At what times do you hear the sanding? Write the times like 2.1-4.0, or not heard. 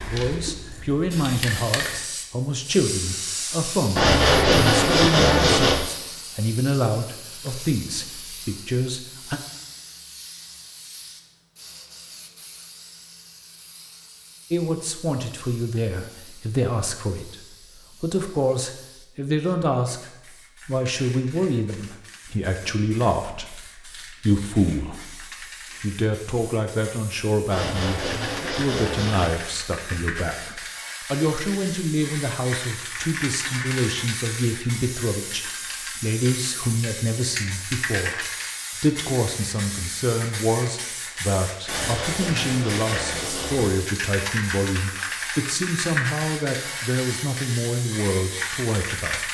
4.0-5.8, 27.5-29.4, 41.6-43.7.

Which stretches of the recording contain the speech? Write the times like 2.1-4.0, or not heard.
0.1-9.4, 14.5-49.2.